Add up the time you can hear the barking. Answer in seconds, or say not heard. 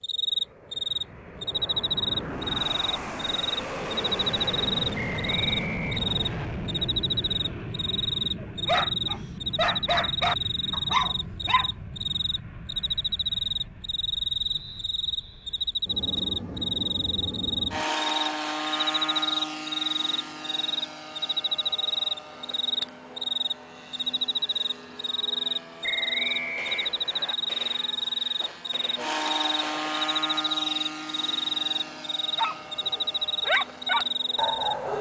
6 s.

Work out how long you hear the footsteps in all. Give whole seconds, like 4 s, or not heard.
not heard.